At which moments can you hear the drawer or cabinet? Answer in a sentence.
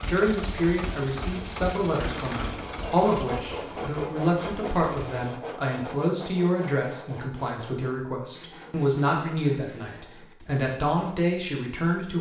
The drawer or cabinet can be heard from 2.0 to 2.8 s.